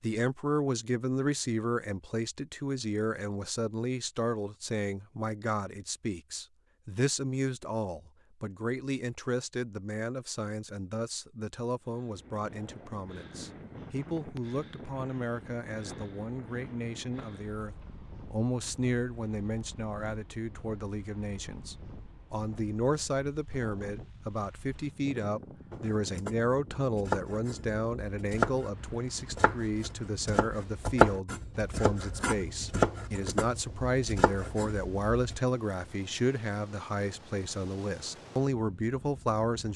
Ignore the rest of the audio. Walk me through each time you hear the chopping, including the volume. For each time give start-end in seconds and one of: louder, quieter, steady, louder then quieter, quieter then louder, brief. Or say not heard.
25.7-35.4 louder then quieter.